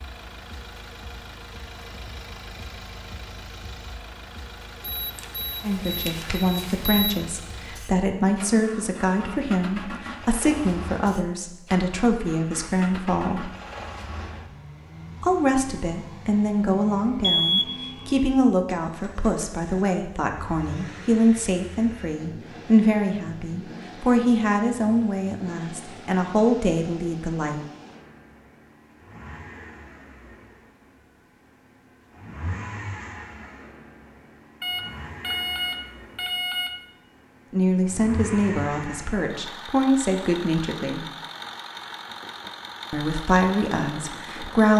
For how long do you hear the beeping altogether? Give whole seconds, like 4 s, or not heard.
5 s.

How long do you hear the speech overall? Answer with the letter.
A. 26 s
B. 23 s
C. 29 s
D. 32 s
A.